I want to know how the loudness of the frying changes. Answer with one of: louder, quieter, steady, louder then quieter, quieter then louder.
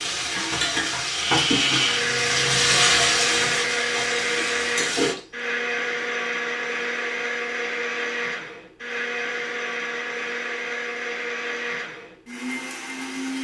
louder then quieter.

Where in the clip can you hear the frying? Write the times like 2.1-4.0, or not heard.
0.0-5.2.